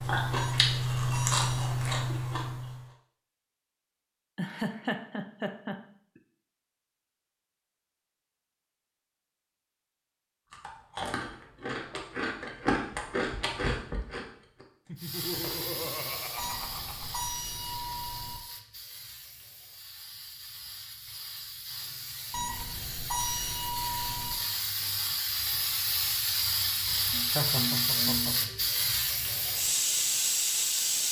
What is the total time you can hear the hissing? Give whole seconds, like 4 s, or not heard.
16 s.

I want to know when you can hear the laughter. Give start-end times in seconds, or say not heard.
4.3-6.2, 14.8-17.2, 27.1-28.6.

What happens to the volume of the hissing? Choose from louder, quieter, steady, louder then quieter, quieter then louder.
quieter then louder.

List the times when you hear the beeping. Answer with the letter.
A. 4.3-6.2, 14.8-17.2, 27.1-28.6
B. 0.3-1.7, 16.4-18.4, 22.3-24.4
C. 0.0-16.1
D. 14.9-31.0
B.